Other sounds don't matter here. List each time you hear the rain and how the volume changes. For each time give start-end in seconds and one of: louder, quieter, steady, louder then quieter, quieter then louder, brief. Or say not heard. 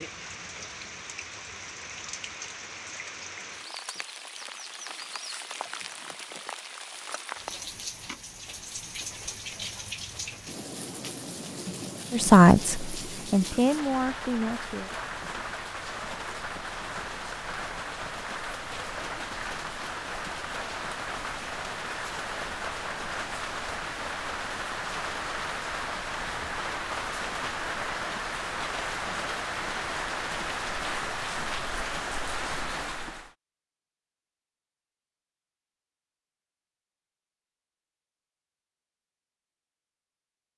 0.0-33.3 louder.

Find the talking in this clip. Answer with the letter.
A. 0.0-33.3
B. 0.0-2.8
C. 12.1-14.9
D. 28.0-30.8
C.